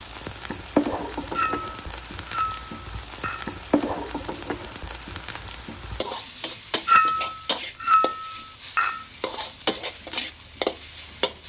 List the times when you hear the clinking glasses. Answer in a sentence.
You can hear the clinking glasses from 1.3 to 3.5 s and from 6.8 to 9.0 s.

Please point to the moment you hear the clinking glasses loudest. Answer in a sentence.
The volume of the clinking glasses peaks at 7 seconds.